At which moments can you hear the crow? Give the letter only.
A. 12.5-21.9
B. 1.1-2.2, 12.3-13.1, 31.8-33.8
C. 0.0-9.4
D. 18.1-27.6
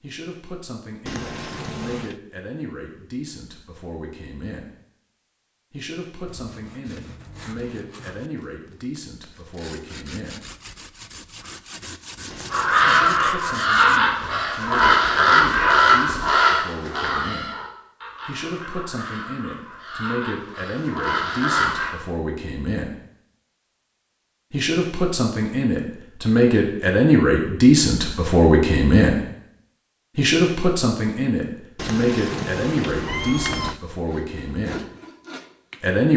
A.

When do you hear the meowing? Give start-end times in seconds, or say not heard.
1.1-2.2, 12.3-13.1, 31.8-33.8.